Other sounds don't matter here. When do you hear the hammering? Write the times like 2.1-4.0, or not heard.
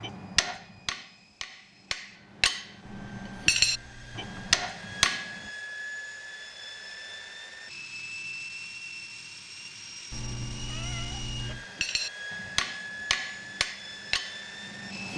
0.0-5.4, 11.7-15.1.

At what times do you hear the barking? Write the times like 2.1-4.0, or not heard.
not heard.